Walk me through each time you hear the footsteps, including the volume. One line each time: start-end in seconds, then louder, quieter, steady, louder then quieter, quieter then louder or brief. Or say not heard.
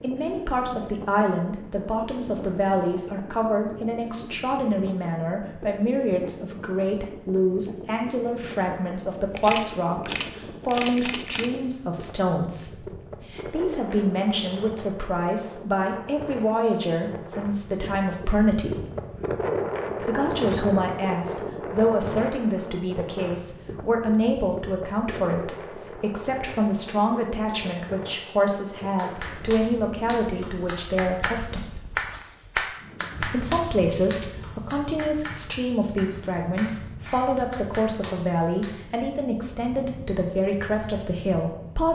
not heard.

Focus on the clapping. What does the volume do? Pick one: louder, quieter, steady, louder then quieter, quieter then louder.
louder then quieter.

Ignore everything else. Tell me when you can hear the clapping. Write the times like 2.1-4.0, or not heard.
28.9-39.0.